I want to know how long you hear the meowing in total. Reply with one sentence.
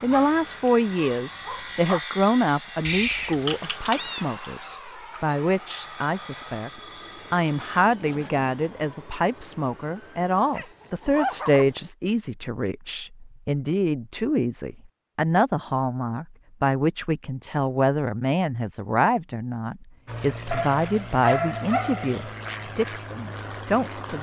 The meowing can be heard for 2 seconds in total.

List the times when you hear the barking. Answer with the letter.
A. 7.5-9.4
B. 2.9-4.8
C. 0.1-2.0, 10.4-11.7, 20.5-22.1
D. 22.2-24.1
C.